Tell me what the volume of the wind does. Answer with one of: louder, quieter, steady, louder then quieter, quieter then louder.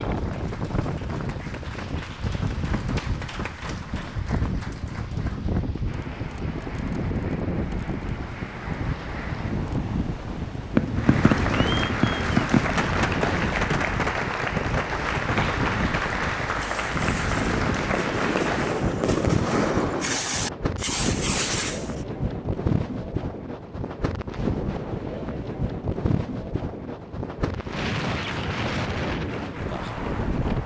steady.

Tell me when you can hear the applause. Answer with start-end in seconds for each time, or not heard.
0.0-9.6, 10.9-18.8, 27.5-30.6.